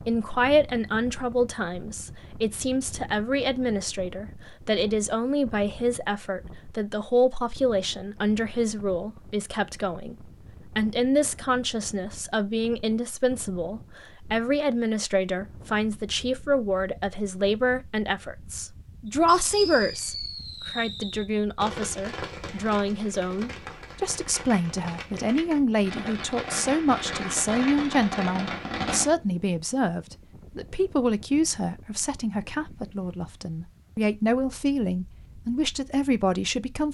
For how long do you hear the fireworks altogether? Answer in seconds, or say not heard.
10 s.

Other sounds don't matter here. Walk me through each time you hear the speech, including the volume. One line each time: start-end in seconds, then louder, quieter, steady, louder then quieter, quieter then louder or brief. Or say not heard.
0.1-36.8 steady.